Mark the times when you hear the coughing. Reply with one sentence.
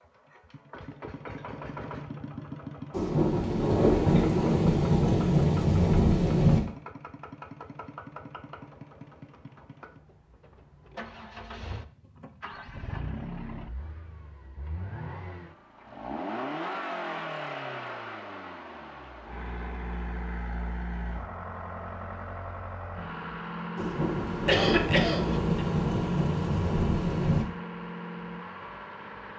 You can hear the coughing from 24.4 to 25.5 s.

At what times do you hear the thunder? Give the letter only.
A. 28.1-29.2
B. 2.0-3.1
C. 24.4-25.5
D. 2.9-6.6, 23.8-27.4
D.